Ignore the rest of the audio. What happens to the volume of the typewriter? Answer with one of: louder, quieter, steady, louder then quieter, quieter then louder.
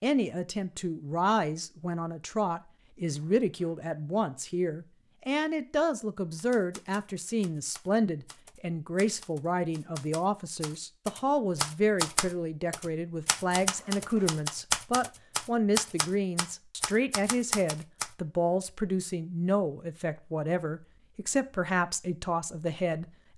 louder.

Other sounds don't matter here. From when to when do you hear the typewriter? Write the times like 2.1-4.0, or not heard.
6.3-18.1.